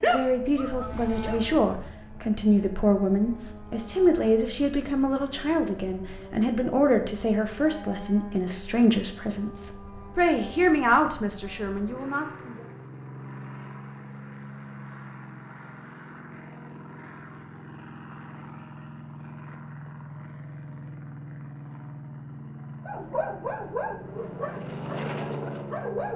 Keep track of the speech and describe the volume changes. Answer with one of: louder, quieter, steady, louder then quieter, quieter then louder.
steady.